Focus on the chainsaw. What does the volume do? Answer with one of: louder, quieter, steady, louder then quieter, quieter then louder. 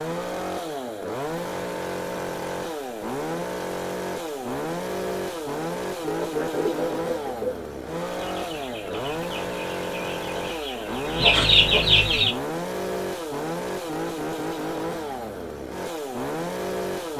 steady.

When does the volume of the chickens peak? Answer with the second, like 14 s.
11 s.